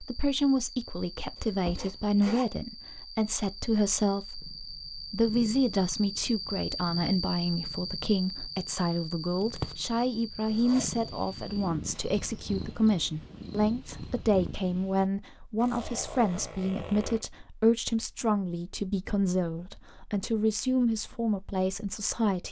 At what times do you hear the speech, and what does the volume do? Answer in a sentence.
You can hear the speech from 0.0 to 22.4 s, at a steady volume.